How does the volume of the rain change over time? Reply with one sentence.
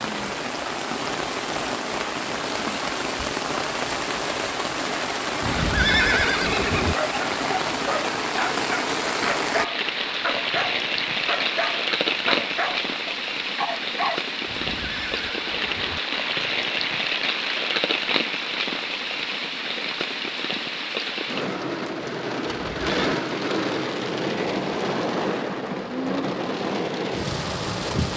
The loudness of the rain stays about the same.